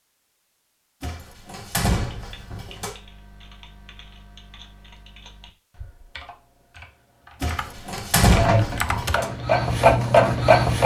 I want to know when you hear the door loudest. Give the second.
8 s.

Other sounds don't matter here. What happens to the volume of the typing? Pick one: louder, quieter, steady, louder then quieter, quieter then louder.
louder.